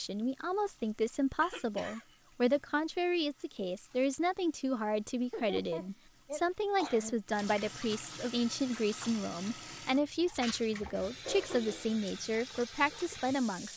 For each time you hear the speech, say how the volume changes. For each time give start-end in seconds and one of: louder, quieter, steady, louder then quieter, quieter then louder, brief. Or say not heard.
0.0-13.7 steady.